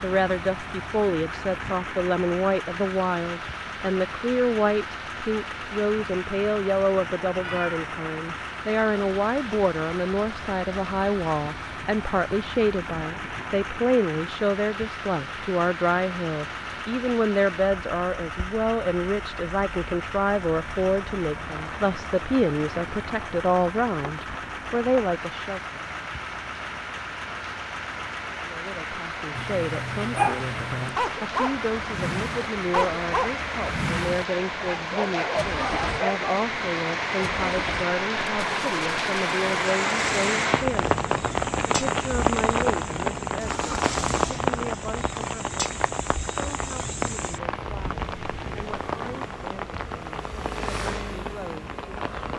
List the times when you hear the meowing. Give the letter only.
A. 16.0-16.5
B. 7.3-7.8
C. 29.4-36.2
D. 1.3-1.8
B.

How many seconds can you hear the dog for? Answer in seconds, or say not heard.
7 s.